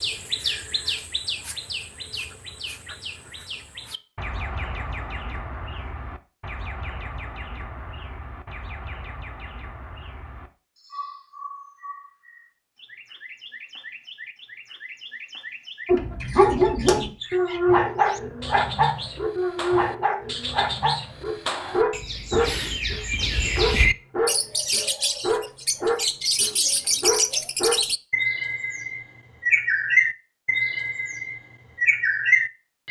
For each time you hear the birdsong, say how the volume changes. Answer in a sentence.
The birdsong can be heard from 0.0 to 32.8 s, getting quieter then louder.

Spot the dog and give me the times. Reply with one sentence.
You can hear the dog from 15.8 to 27.8 s.